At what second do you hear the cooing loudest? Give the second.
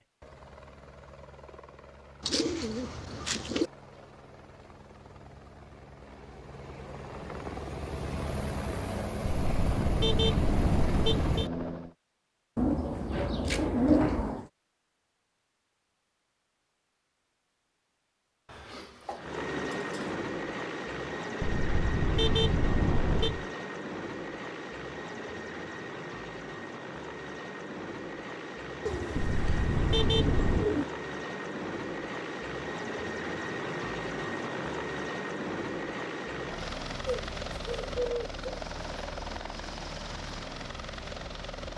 14 s.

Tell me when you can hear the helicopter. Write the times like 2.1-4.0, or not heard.
0.0-11.9, 19.1-41.7.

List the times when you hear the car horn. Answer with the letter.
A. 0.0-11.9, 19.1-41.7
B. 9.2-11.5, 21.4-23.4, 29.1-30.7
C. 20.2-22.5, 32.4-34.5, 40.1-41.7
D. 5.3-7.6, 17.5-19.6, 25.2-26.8
B.